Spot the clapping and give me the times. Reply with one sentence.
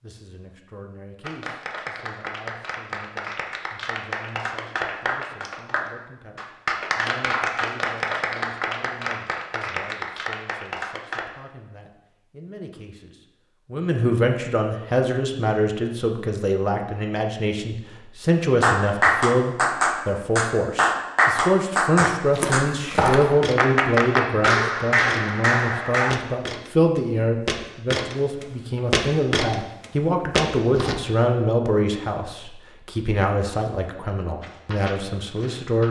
You can hear the clapping from 1.2 to 11.2 s, from 18.6 to 26.1 s and from 34.4 to 35.8 s.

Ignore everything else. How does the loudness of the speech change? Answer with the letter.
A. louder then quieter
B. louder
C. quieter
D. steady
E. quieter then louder
B.